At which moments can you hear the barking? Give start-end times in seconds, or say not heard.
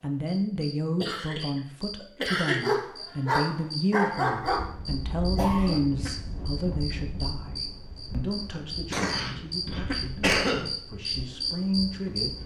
2.6-4.7.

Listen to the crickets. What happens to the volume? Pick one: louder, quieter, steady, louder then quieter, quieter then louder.
louder.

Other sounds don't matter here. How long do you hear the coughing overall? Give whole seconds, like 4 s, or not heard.
4 s.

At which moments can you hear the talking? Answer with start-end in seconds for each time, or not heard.
0.0-12.3.